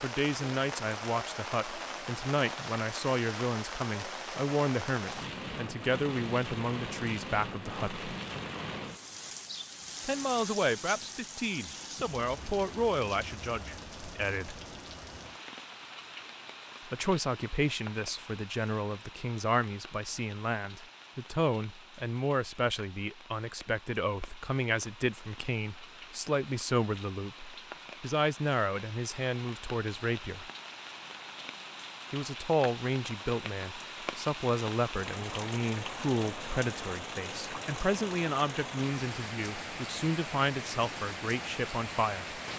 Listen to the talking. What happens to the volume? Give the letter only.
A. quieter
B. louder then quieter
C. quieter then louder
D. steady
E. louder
D.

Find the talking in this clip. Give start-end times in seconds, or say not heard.
0.0-8.1, 10.1-14.6, 16.9-30.5, 32.1-42.4.